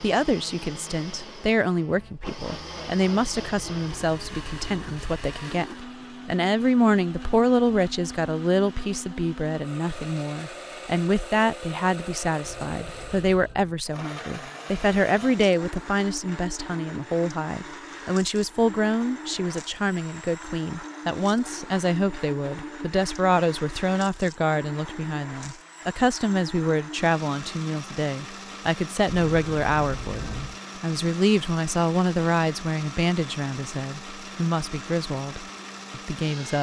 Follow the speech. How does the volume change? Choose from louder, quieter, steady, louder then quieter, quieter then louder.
steady.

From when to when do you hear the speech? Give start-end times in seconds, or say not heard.
0.0-36.5.